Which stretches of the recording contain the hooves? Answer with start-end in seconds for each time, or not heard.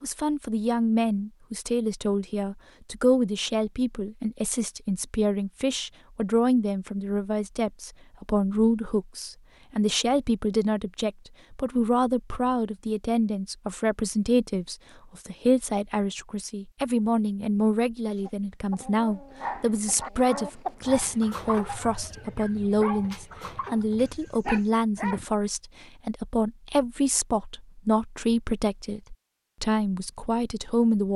not heard.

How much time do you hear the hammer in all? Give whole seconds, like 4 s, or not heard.
not heard.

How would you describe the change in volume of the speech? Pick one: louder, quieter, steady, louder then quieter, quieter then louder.
steady.